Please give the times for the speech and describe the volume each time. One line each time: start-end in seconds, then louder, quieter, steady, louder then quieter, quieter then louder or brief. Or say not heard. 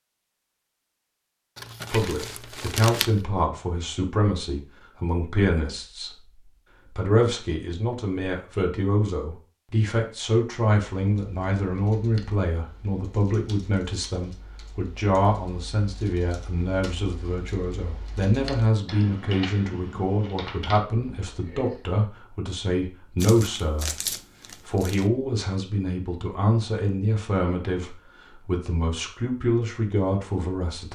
1.9-6.2 quieter then louder
6.9-30.9 steady.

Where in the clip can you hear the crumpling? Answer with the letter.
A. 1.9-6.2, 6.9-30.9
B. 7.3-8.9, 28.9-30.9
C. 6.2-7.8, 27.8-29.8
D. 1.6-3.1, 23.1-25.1
D.